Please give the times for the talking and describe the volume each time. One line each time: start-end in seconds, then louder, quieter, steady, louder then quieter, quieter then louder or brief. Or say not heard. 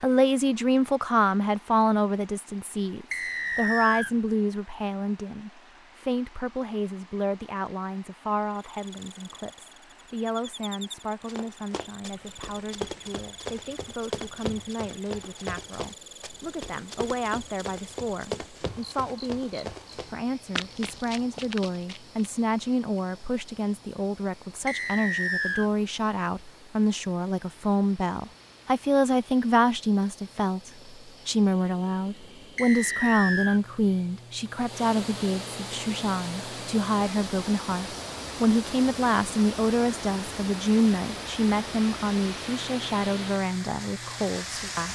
0.0-44.9 quieter then louder.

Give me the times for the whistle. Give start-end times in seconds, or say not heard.
3.1-4.2, 24.6-25.7, 32.5-33.6.